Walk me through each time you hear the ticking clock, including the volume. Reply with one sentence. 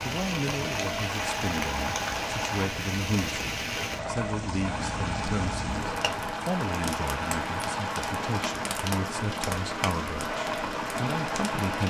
You can't hear the ticking clock here.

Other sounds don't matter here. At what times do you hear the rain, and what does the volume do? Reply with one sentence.
The rain can be heard from 0.0 to 11.8 s, at a steady volume.